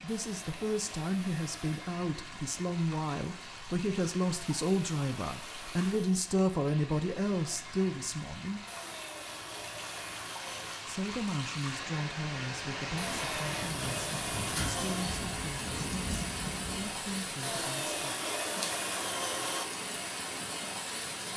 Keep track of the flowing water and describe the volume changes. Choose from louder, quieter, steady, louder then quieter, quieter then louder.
louder.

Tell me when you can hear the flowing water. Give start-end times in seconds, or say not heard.
0.0-21.3.